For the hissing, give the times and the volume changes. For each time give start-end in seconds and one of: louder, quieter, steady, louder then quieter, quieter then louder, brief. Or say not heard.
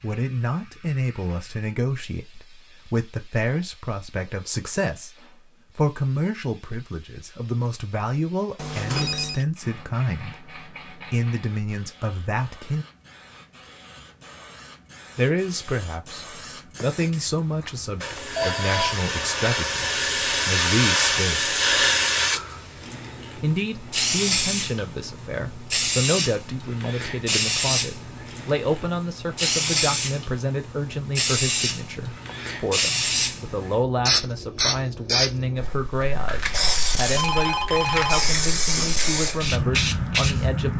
0.0-40.7 louder.